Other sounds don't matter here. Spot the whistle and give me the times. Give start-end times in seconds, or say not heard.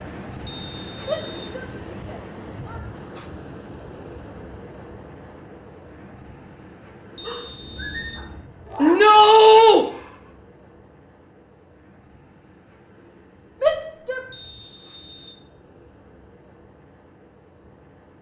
0.5-1.6, 7.2-8.3, 14.3-15.4.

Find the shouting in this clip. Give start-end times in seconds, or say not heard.
1.1-2.8, 8.8-9.8, 13.6-14.2.